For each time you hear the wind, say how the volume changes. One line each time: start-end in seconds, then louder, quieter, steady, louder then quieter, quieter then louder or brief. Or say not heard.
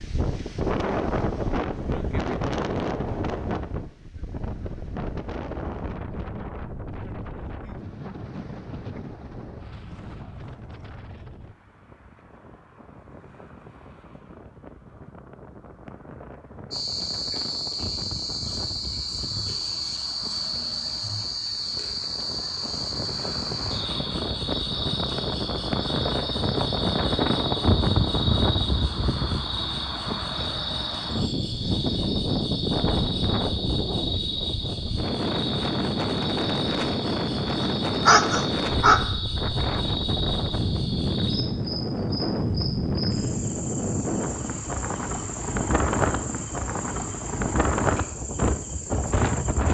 0.0-49.6 quieter then louder.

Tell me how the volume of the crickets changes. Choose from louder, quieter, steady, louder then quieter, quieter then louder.
quieter.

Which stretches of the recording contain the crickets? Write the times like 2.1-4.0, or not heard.
16.7-49.6.